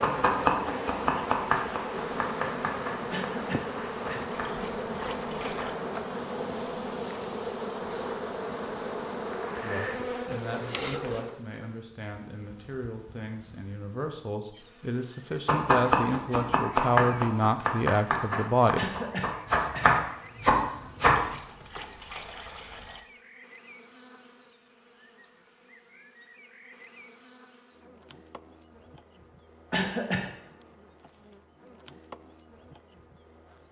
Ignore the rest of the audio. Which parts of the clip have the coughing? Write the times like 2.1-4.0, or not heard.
3.1-4.2, 18.8-19.9, 29.7-30.3.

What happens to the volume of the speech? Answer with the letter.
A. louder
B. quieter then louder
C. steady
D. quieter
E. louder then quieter
A.